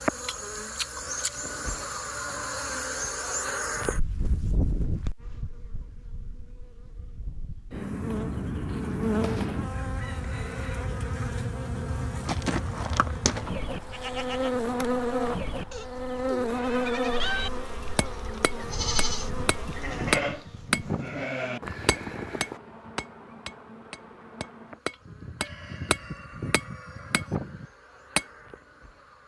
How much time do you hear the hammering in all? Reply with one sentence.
You can hear the hammering for 10 seconds altogether.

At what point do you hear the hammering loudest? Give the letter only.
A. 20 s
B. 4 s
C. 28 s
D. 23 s
A.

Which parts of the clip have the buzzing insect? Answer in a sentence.
The buzzing insect can be heard from 0.0 to 29.2 s.